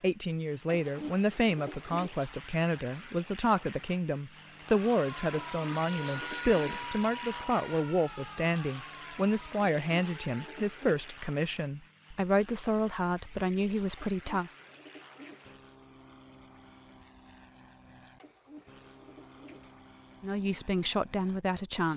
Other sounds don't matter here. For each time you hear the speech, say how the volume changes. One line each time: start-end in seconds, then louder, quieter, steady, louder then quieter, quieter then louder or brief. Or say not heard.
0.0-14.5 steady
20.2-21.9 brief.